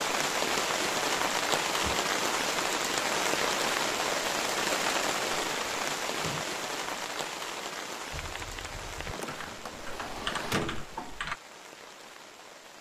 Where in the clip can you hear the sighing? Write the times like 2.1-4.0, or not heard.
not heard.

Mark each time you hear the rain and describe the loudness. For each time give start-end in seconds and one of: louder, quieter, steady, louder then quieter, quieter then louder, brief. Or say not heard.
0.0-12.7 quieter.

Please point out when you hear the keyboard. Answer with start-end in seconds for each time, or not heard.
8.1-11.4.